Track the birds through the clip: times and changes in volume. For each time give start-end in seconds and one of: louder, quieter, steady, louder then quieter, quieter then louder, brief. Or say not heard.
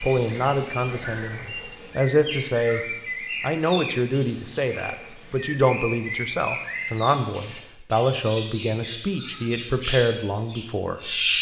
0.0-11.3 steady.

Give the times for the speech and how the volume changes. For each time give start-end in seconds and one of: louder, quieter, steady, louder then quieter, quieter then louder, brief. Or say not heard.
0.0-2.8 brief
3.4-11.2 steady.